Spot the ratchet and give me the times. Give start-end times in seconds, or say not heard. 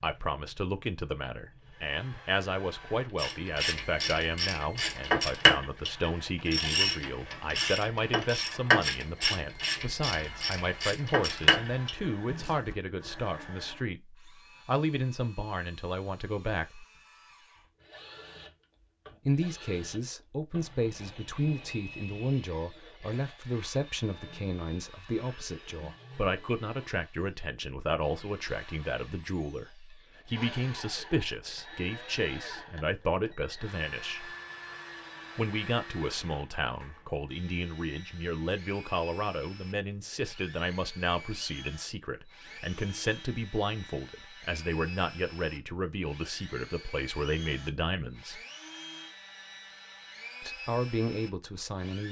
3.1-12.6.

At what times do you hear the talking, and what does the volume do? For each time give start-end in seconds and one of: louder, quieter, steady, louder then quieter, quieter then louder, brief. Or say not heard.
0.0-16.9 steady
19.2-34.4 steady
35.4-48.4 steady
50.4-52.0 brief.